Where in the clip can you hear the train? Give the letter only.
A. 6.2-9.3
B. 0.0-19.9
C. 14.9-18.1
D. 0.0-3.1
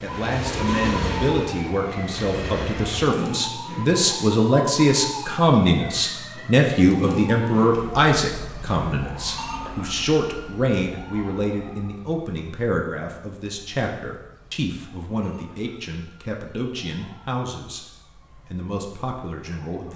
D.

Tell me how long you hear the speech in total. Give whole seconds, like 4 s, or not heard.
20 s.